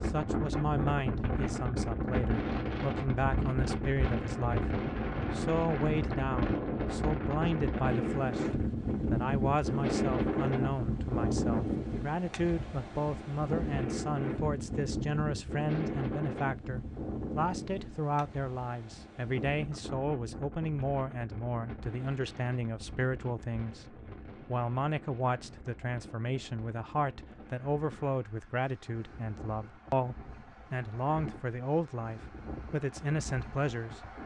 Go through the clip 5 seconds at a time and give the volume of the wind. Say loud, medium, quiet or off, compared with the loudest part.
loud, loud, loud, medium, quiet, quiet, quiet.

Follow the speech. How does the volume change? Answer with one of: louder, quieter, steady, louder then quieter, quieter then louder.
steady.